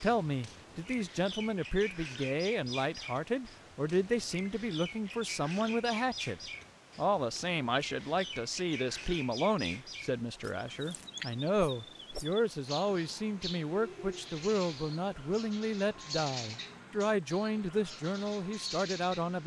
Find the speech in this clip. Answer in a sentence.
The speech can be heard from 0.0 to 19.4 s.